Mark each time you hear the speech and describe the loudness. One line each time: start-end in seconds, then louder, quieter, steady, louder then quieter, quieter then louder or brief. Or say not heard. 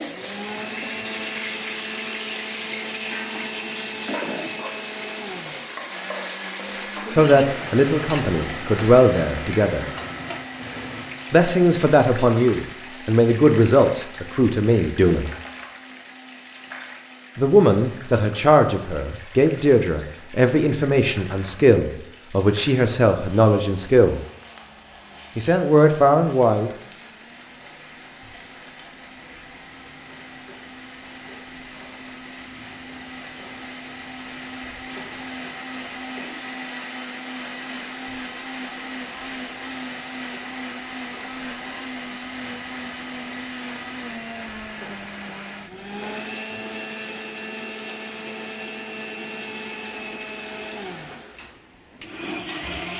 7.1-9.8 brief
11.3-15.3 steady
17.4-24.2 steady
25.4-26.7 brief.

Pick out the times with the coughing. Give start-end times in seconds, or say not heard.
4.0-4.6.